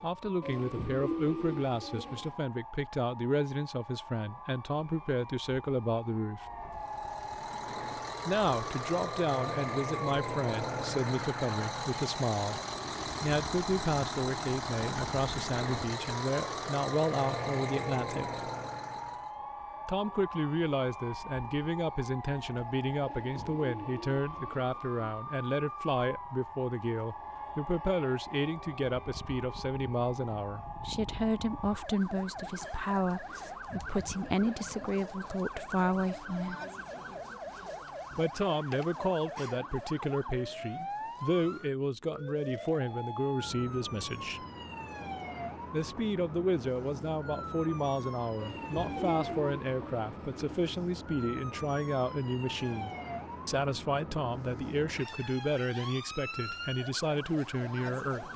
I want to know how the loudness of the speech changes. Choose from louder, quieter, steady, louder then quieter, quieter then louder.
steady.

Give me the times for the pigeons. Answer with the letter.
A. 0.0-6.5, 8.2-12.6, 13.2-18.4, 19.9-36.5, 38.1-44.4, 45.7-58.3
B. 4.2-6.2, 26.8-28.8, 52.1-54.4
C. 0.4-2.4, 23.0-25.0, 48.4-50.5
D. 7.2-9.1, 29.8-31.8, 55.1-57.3
C.